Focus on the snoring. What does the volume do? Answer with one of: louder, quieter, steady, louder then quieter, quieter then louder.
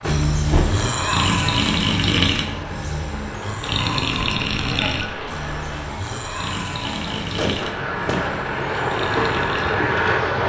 quieter.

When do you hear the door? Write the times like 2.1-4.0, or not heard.
0.0-0.7, 7.3-8.2.